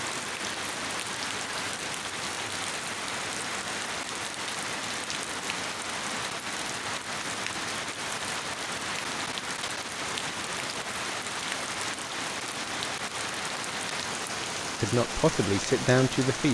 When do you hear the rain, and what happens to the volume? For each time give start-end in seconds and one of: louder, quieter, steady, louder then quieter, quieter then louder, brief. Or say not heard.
0.0-16.5 steady.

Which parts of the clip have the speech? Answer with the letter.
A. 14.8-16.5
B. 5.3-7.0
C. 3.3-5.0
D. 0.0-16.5
A.